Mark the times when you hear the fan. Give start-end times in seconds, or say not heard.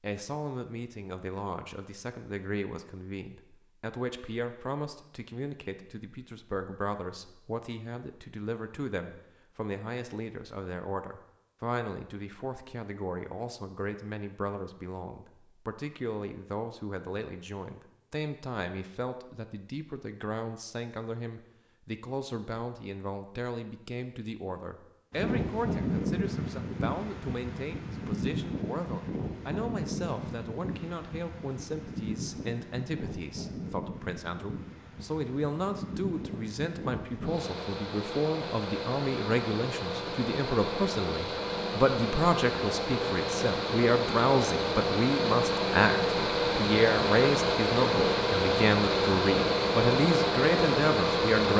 25.1-51.5.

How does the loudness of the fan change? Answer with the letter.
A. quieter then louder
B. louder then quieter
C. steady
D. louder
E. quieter
A.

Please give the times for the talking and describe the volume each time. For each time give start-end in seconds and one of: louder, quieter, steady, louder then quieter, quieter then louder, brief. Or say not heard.
0.0-51.5 louder.